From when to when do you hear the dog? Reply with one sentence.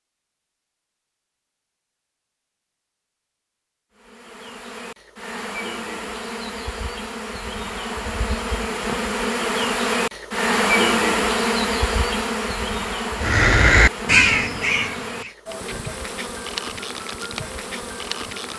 The dog can't be heard in this clip.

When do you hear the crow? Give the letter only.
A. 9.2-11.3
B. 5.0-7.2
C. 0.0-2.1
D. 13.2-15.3
D.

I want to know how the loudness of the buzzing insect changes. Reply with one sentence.
The volume of the buzzing insect goes up, then down.